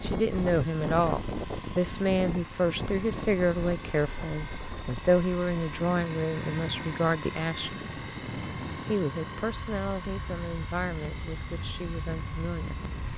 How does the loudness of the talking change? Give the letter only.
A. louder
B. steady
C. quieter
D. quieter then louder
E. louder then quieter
C.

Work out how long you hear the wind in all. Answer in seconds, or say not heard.
13 s.